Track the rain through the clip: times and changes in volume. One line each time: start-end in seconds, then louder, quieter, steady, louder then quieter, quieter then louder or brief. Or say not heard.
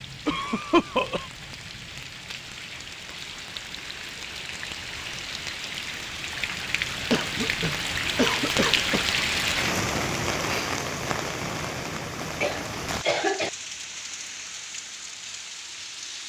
0.0-16.2 louder then quieter.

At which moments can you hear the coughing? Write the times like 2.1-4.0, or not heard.
0.2-1.2, 7.1-9.1, 12.4-13.5.